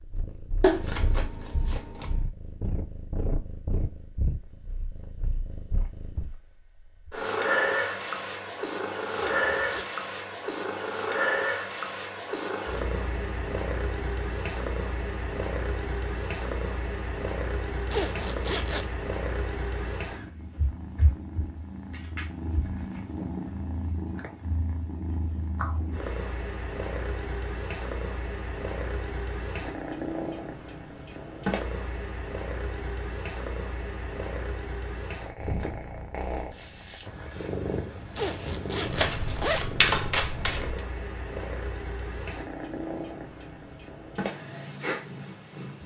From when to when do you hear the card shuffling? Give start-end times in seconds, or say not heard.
0.6-2.2, 38.9-40.8.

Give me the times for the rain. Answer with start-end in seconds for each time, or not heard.
not heard.